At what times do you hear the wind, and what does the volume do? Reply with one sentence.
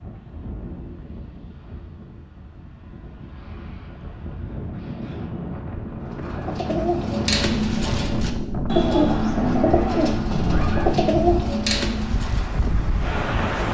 The wind can be heard from 0.0 to 13.6 s, getting louder.